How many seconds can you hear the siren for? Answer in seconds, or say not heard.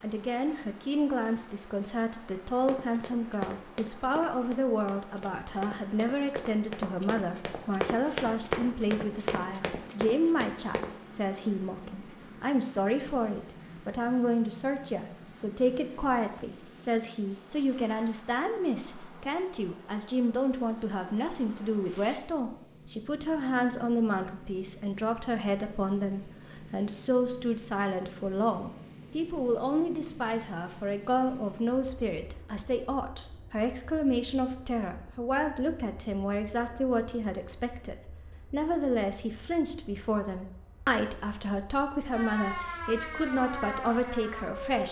3 s.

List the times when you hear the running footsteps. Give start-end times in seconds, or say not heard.
2.6-10.9.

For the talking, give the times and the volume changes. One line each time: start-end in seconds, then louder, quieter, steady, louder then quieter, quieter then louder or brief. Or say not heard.
0.0-44.8 steady.